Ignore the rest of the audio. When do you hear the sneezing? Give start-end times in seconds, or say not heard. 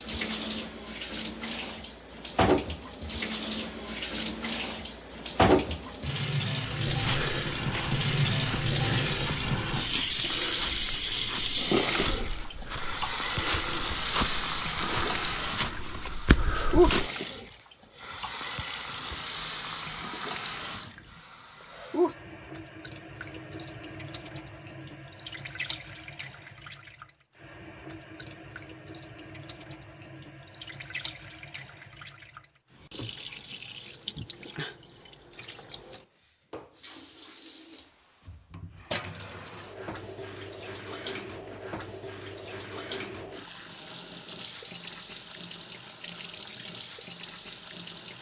not heard.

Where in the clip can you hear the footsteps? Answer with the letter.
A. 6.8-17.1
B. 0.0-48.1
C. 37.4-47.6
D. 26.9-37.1
A.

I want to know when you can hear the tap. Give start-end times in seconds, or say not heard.
0.0-48.1.